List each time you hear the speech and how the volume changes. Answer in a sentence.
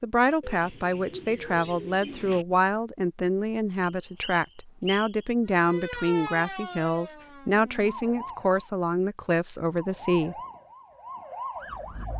You can hear the speech from 0.0 to 10.3 s, at a steady volume.